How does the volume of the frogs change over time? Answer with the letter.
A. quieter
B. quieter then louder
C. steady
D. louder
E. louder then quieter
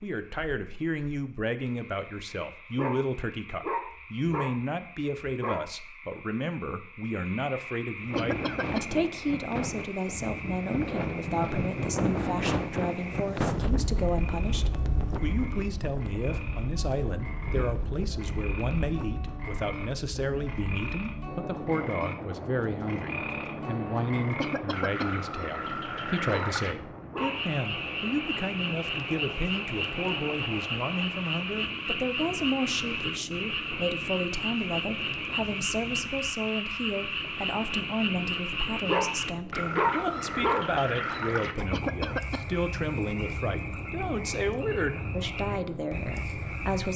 D.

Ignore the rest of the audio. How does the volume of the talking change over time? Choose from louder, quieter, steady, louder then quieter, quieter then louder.
steady.